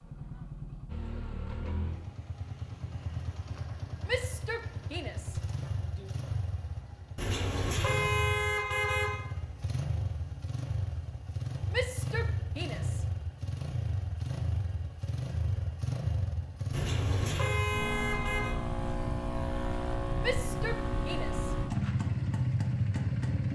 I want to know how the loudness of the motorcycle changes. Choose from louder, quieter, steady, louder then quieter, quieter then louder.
louder.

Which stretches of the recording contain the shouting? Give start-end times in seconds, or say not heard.
4.0-6.2, 11.7-13.1, 20.2-21.6.